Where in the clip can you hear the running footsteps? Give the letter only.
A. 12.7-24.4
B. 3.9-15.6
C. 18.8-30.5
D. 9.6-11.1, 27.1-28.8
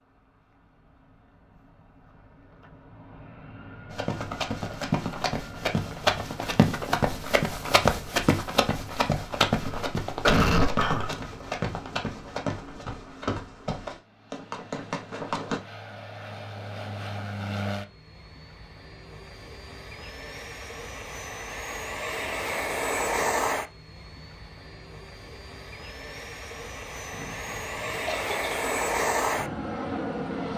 B.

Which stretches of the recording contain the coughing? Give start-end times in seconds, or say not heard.
9.6-11.1, 27.1-28.8.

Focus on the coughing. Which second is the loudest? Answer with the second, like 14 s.
10 s.